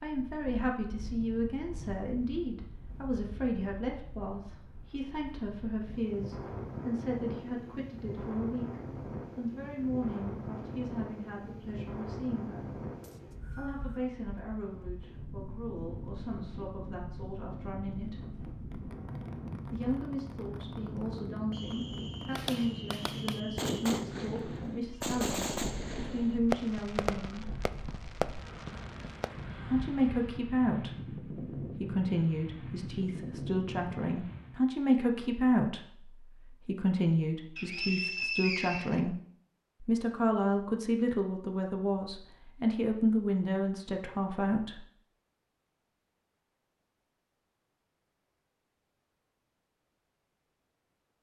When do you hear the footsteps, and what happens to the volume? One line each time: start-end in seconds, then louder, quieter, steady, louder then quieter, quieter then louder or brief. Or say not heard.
not heard.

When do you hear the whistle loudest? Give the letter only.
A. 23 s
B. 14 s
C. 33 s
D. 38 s
D.